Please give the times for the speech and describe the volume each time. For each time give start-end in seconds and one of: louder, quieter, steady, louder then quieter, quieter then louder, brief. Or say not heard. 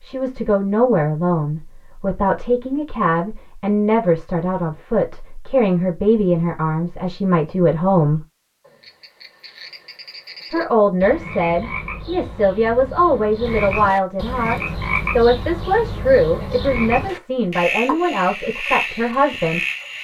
0.0-8.2 steady
10.5-19.6 steady.